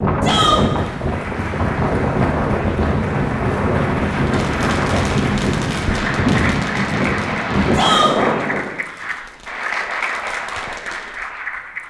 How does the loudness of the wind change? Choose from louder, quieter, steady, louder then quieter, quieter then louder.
steady.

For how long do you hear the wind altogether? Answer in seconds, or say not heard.
9 s.